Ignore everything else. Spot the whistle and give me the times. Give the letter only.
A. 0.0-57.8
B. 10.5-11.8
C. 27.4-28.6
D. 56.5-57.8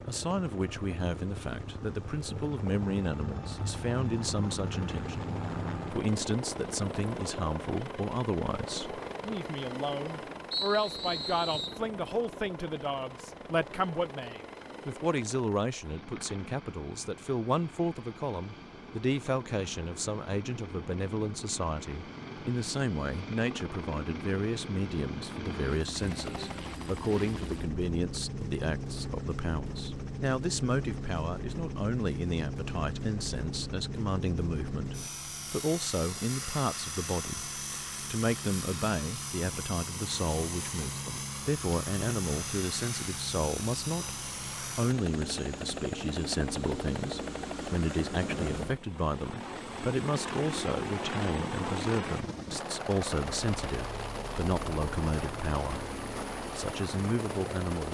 B.